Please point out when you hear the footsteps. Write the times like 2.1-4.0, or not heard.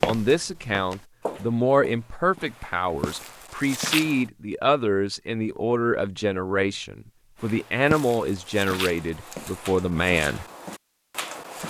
0.0-4.2, 7.4-11.6.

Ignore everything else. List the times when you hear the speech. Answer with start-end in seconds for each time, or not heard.
0.0-10.4.